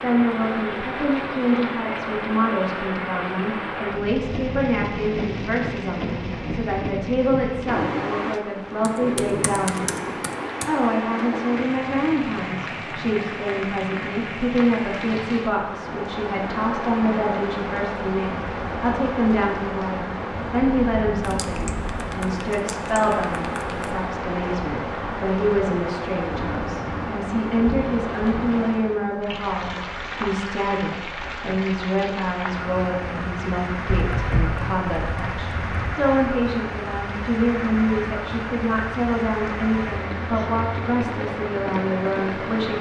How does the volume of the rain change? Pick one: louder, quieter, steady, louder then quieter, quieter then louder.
steady.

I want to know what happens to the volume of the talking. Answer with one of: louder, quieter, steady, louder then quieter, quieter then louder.
steady.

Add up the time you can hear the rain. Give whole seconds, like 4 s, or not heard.
43 s.